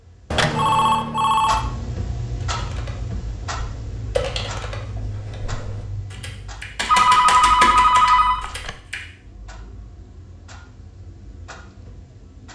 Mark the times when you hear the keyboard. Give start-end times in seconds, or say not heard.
2.4-8.9.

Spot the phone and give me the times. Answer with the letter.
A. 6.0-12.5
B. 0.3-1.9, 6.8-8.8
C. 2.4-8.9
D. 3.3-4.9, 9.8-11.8
B.